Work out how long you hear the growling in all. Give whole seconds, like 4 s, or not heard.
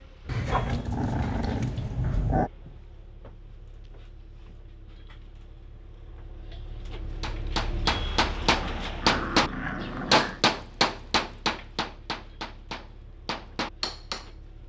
4 s.